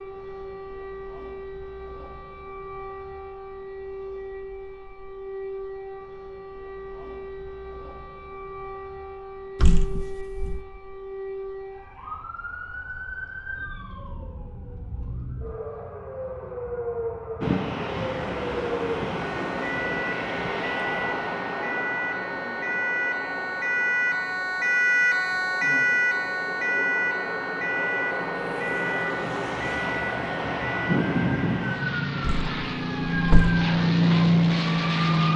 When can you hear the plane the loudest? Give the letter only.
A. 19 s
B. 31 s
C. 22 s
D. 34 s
D.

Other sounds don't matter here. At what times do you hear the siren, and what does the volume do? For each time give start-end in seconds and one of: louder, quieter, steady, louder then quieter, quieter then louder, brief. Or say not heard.
0.0-35.3 louder then quieter.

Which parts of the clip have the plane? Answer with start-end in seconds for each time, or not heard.
17.4-35.3.